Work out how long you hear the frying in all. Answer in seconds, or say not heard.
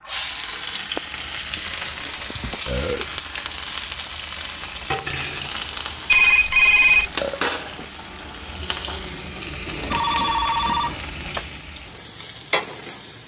13 s.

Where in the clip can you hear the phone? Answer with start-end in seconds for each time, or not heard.
1.8-2.6, 6.0-7.1, 9.9-11.4.